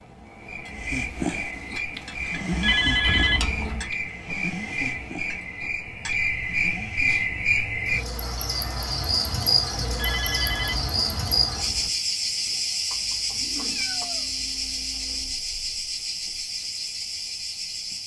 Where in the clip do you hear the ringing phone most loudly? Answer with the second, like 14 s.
3 s.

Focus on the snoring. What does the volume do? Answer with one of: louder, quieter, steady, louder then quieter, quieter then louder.
quieter.